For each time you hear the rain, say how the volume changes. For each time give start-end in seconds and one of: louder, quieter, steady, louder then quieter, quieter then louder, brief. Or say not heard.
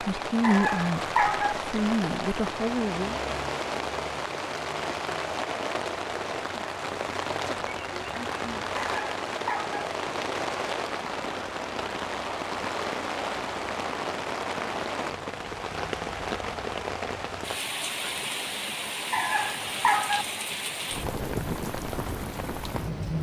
0.0-23.1 steady.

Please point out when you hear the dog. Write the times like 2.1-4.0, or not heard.
0.4-1.6, 8.8-9.8, 19.1-20.2.